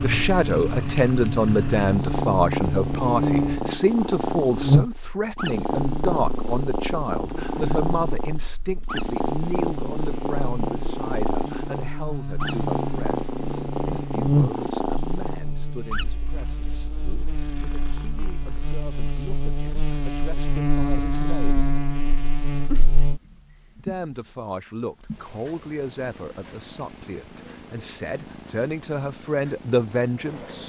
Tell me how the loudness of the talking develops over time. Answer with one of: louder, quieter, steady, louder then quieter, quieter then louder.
quieter then louder.